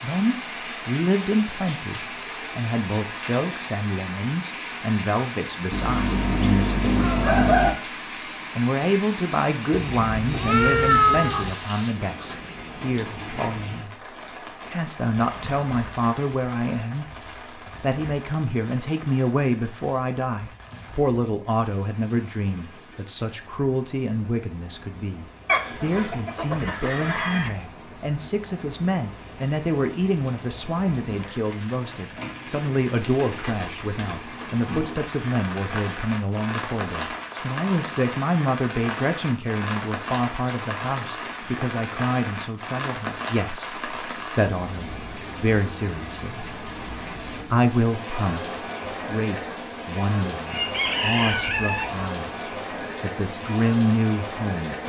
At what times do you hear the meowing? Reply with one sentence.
The meowing can be heard from 9.7 to 11.6 s.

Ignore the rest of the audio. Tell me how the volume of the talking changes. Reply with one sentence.
The loudness of the talking stays about the same.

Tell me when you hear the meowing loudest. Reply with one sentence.
The volume of the meowing peaks at 11 seconds.